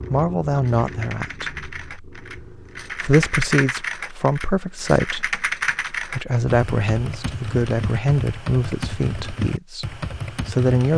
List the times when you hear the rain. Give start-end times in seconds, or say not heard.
not heard.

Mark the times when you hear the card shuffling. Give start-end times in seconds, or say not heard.
not heard.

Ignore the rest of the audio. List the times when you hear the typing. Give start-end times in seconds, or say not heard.
0.0-10.9.